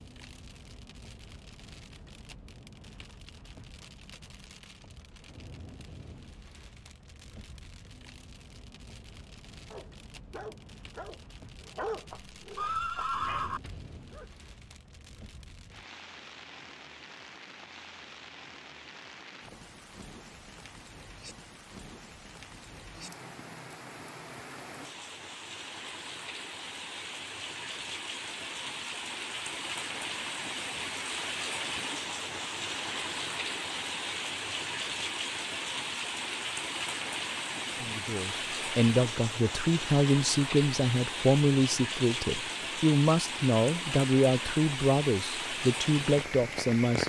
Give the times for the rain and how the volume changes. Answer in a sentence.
The rain can be heard from 0.0 to 47.0 s, getting louder.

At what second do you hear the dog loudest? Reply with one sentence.
The loudest moment of the dog is at 12 seconds.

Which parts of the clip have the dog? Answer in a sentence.
The dog can be heard from 9.7 to 14.4 s.